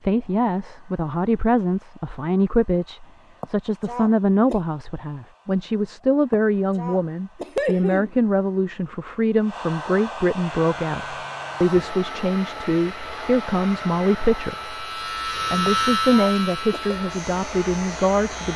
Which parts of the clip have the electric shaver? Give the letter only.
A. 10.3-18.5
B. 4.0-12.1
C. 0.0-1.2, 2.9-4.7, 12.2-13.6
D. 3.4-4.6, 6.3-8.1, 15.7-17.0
A.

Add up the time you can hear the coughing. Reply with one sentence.
The coughing can be heard for 4 seconds in total.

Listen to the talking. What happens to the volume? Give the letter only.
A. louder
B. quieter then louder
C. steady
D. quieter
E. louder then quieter
C.